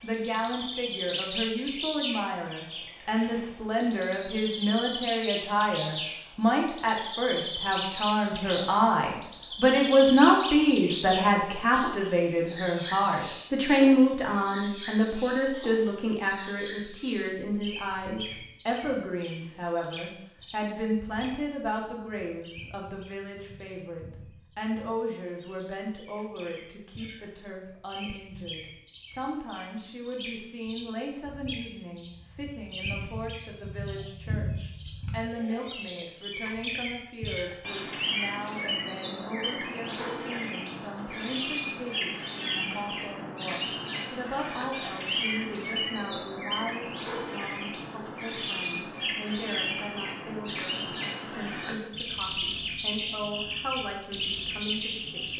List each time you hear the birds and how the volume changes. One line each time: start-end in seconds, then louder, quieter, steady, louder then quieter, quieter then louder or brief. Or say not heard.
0.0-55.3 quieter then louder.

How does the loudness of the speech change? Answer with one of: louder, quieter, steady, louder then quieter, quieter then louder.
quieter.